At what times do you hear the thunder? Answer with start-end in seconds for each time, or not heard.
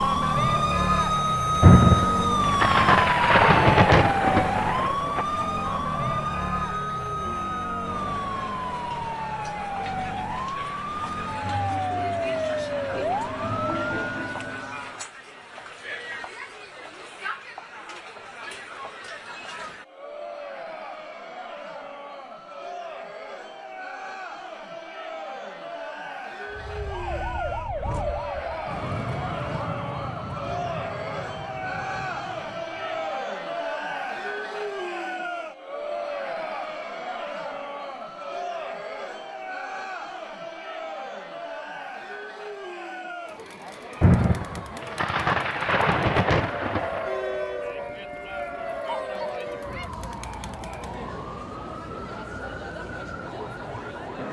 1.6-5.2, 44.0-47.1.